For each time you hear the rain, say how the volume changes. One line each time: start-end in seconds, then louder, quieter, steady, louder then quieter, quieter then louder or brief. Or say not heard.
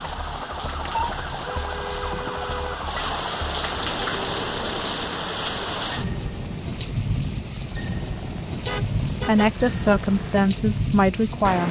0.0-11.6 louder.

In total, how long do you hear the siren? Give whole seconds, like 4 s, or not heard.
3 s.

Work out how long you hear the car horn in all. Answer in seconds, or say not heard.
3 s.